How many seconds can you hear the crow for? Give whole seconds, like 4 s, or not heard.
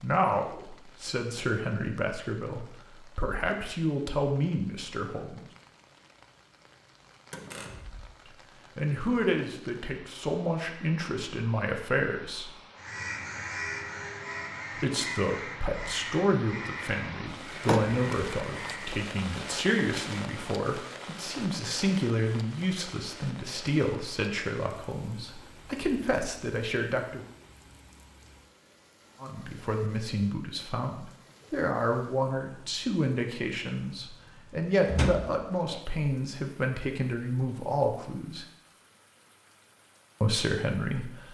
6 s.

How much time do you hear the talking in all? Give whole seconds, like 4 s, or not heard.
32 s.